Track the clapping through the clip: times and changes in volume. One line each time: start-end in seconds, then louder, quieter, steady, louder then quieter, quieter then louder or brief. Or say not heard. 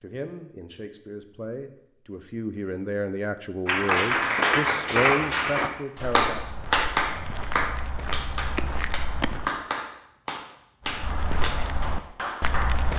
3.6-12.8 quieter.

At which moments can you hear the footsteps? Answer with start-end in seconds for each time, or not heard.
4.2-9.6, 10.8-12.9.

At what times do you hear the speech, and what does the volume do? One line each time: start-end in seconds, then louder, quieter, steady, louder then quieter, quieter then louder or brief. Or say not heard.
0.0-6.6 louder.